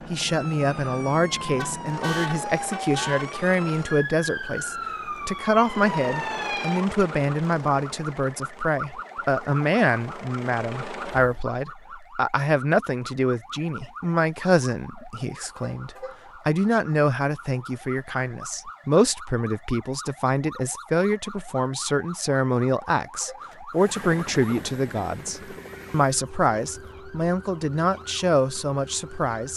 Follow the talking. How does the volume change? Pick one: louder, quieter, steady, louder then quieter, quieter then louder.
steady.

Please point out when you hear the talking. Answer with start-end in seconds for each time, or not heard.
0.1-29.5.